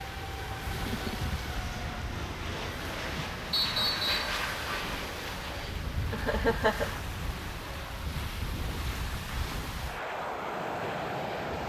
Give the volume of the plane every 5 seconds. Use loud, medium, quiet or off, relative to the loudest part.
loud, medium, loud.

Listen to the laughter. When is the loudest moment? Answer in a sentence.
The loudest moment of the laughter is at 7 seconds.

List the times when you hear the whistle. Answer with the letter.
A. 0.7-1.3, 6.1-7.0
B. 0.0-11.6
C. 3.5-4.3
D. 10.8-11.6
C.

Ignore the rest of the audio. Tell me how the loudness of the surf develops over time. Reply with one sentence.
The volume of the surf stays about the same.